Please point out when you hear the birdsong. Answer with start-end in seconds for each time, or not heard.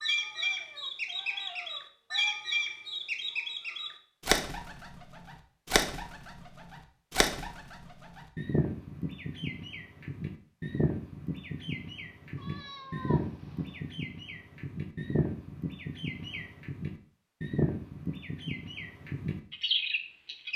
0.0-20.5.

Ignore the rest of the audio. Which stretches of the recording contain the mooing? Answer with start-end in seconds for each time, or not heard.
not heard.